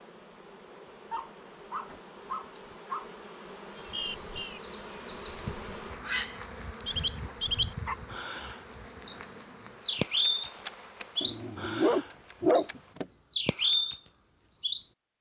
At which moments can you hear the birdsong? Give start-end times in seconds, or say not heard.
3.8-14.8.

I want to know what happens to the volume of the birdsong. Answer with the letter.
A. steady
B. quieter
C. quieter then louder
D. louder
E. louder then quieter
D.